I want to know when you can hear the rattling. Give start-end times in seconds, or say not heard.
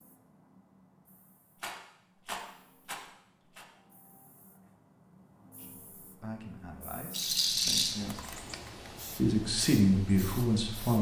1.6-3.6, 7.1-8.0.